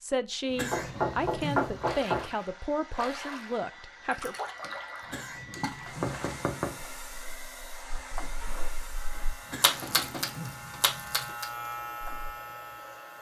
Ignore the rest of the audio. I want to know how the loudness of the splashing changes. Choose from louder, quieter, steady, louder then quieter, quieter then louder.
quieter then louder.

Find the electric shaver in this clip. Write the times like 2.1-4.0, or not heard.
8.8-13.1.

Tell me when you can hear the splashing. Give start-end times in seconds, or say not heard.
1.8-12.3.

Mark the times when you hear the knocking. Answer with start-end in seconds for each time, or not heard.
0.7-2.3, 6.0-6.8, 9.1-10.9.